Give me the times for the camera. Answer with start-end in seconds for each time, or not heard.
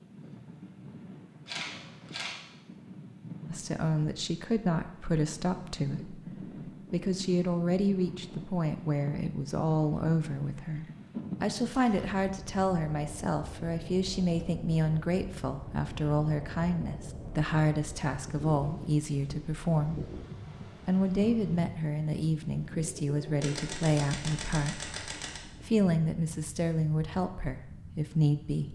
1.4-2.4, 11.7-12.2, 23.4-25.4.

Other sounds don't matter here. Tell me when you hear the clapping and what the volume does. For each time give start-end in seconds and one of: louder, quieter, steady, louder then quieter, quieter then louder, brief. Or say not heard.
not heard.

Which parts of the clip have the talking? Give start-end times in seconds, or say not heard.
3.5-20.1, 20.9-28.6.